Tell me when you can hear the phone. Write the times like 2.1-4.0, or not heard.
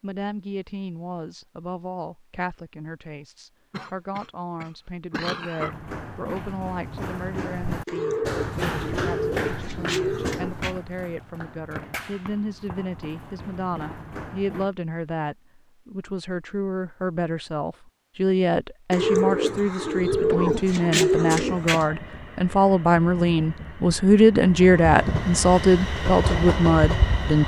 not heard.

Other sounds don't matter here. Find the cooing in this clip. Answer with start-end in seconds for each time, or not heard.
7.8-10.8, 18.9-21.9.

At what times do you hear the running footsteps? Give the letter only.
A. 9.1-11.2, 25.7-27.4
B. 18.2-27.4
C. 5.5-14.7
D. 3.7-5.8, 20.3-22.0
C.